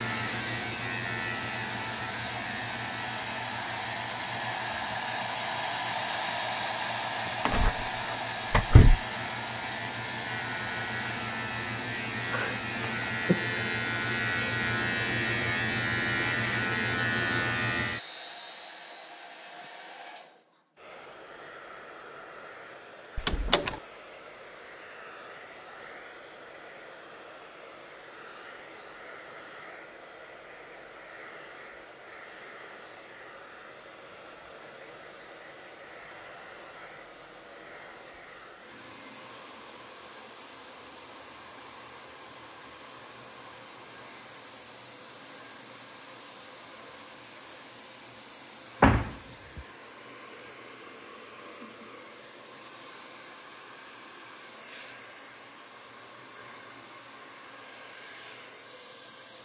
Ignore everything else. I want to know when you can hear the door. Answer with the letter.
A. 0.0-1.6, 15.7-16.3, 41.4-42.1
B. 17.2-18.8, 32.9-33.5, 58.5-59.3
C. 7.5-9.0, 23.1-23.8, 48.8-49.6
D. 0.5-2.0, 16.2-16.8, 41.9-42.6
C.